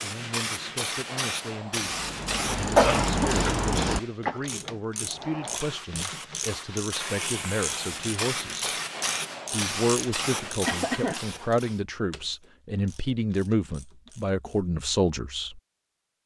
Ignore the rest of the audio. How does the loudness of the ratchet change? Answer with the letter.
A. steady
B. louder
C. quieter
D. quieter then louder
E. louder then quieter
C.